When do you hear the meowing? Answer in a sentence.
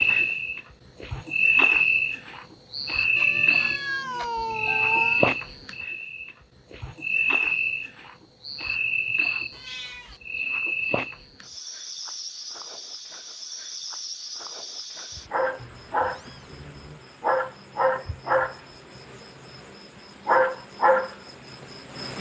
You can hear the meowing from 3.1 to 5.2 s, from 9.5 to 10.2 s and from 15.6 to 17.0 s.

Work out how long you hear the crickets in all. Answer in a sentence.
The crickets can be heard for 22 seconds in total.